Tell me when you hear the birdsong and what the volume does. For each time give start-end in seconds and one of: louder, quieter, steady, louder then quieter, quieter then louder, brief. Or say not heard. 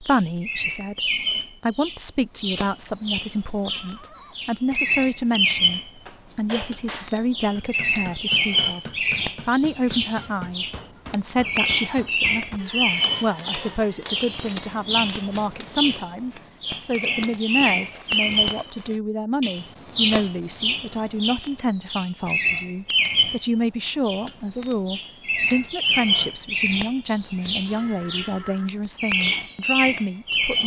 0.0-30.6 steady.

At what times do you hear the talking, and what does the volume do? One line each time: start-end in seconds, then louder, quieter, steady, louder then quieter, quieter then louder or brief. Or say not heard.
0.0-30.6 steady.